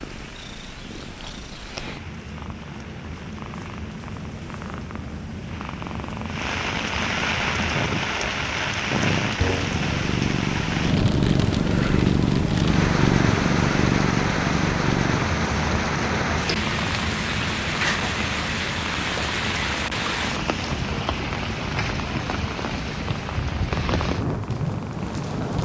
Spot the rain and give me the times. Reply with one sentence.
You can hear the rain from 0.0 to 25.6 s.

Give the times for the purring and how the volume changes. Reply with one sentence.
You can hear the purring from 0.0 to 25.6 s, getting louder then quieter.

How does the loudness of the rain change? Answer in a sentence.
The volume of the rain goes up.